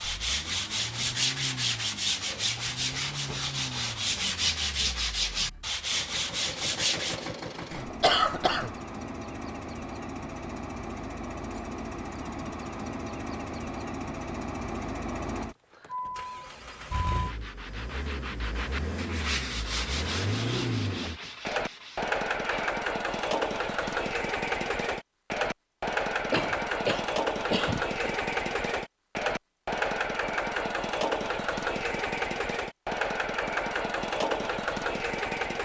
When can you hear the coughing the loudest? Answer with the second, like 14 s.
8 s.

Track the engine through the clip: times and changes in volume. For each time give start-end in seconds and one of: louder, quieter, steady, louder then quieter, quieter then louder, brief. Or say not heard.
0.0-35.5 louder.